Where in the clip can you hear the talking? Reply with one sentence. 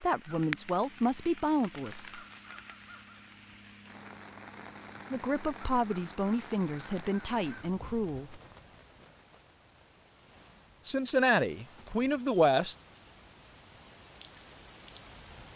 The talking can be heard from 0.0 to 2.2 s, from 5.1 to 8.4 s and from 10.8 to 12.8 s.